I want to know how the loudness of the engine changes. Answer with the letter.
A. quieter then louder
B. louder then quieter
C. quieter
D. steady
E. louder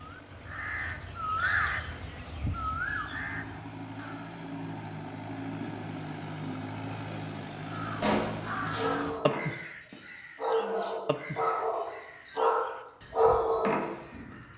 E.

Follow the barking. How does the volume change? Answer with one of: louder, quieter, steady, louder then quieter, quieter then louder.
louder.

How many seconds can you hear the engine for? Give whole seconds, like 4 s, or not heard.
9 s.